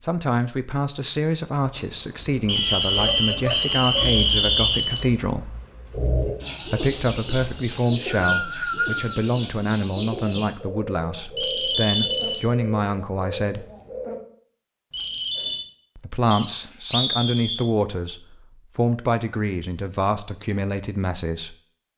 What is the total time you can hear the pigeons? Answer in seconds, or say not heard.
8 s.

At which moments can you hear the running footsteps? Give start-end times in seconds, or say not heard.
not heard.